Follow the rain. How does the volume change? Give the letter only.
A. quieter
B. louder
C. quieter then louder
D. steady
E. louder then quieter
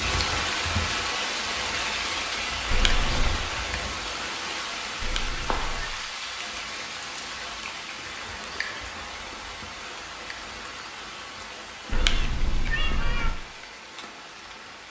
A.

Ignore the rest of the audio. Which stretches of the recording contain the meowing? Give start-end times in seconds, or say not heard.
2.7-3.4, 5.0-6.0, 11.9-13.3.